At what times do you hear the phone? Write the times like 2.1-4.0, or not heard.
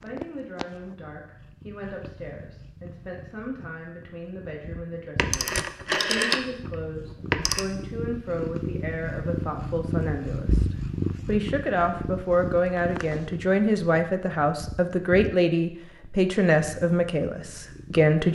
5.2-7.7.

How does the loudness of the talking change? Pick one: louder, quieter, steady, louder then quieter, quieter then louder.
louder.